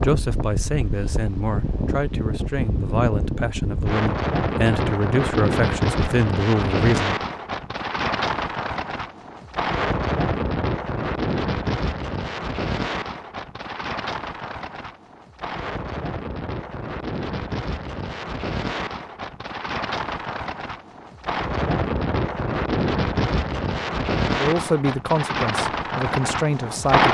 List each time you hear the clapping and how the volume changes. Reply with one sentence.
You can't hear the clapping here.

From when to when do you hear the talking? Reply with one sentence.
You can hear the talking from 0.0 to 7.2 s and from 24.4 to 27.0 s.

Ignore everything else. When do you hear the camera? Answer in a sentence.
The camera can't be heard in this clip.